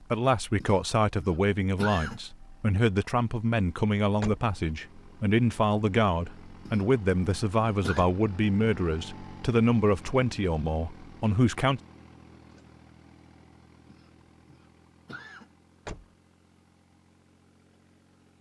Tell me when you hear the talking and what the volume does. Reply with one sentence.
The talking can be heard from 0.1 to 11.8 s, at a steady volume.